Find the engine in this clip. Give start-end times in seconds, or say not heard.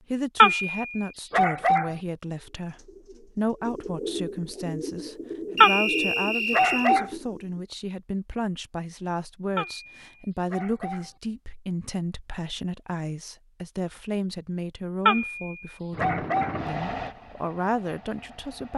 15.9-18.7.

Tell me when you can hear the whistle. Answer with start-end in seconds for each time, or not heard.
5.5-7.0.